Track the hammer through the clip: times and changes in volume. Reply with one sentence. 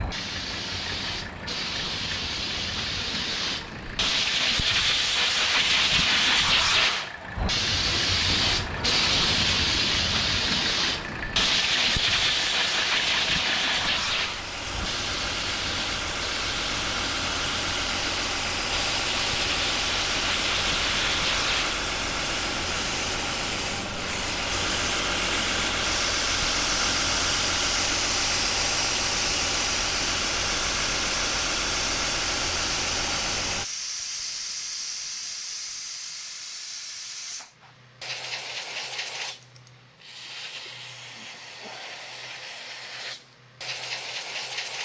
The hammer can't be heard in this clip.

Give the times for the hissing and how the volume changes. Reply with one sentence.
You can hear the hissing from 0.0 to 44.8 s, getting quieter.